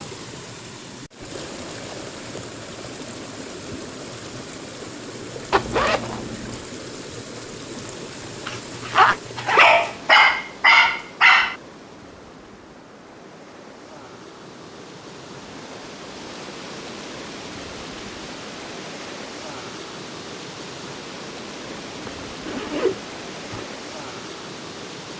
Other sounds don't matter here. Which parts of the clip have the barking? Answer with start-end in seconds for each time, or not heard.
9.6-11.6.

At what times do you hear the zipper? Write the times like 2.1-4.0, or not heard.
5.5-6.7, 8.4-9.7, 21.9-23.7.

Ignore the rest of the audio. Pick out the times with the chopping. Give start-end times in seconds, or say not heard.
not heard.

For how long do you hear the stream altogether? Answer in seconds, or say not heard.
25 s.